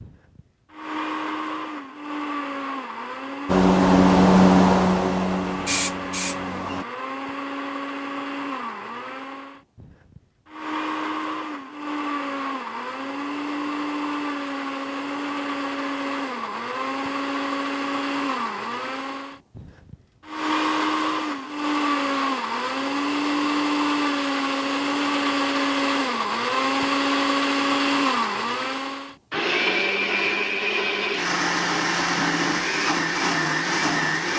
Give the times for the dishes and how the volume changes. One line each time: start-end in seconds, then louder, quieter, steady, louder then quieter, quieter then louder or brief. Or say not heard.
not heard.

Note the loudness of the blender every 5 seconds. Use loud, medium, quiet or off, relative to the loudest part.
medium, medium, medium, medium, loud, loud, loud.